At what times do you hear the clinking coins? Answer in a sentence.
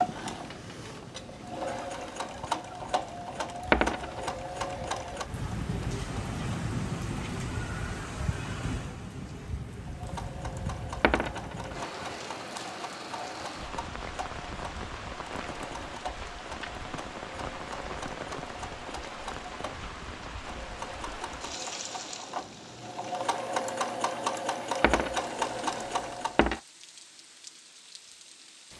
The clinking coins can be heard from 3.7 to 4.3 s, from 11.0 to 11.9 s and from 24.8 to 26.6 s.